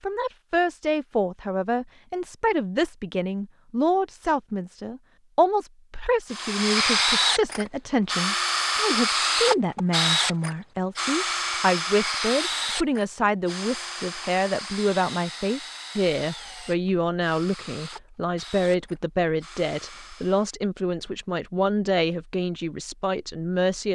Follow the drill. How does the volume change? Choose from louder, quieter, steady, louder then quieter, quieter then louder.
quieter.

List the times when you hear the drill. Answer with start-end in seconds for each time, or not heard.
6.3-20.6.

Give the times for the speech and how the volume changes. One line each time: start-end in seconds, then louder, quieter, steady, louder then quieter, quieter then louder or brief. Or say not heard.
0.0-23.9 steady.